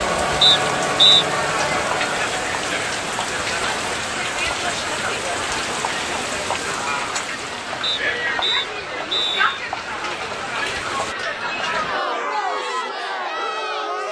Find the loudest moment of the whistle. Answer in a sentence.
The volume of the whistle peaks at 1 second.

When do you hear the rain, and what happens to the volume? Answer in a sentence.
You can hear the rain from 0.0 to 11.2 s, getting quieter.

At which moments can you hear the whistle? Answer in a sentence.
The whistle can be heard from 0.4 to 1.2 s and from 7.8 to 9.6 s.